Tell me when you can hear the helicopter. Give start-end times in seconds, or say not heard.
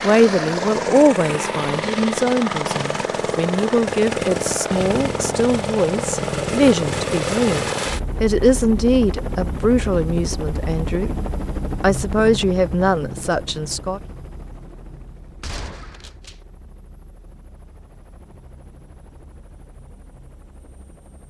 0.0-21.2.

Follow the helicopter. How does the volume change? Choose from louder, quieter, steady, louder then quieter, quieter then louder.
quieter.